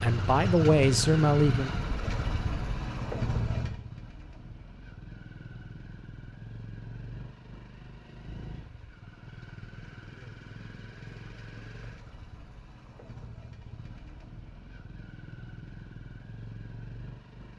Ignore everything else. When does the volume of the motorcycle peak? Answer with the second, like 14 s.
1 s.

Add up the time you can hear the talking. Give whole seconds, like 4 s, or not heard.
2 s.